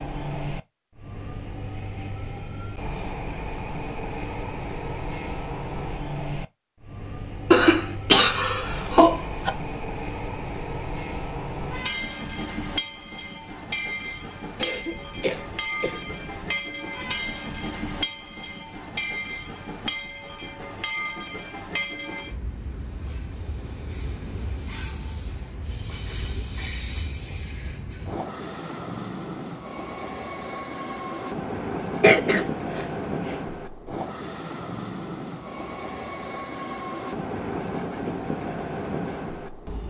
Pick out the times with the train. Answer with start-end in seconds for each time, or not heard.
0.0-39.8.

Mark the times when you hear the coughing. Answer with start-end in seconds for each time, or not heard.
7.5-9.5, 14.6-16.6, 32.0-33.4.